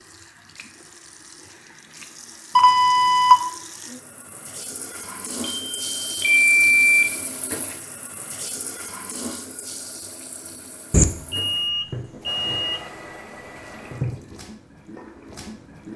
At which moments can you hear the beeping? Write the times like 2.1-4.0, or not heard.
2.5-3.4, 5.4-7.0, 10.9-12.8.